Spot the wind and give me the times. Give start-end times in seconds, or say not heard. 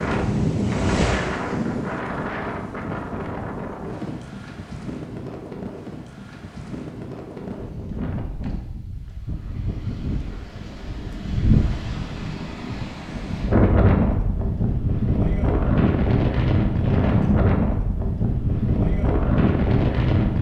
0.0-20.3.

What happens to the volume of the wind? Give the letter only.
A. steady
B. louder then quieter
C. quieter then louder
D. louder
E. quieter
C.